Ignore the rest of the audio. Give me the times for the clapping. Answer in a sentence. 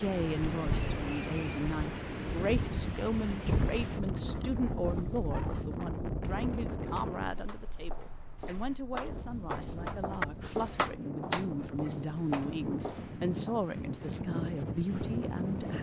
You can hear the clapping from 7.0 to 12.4 s.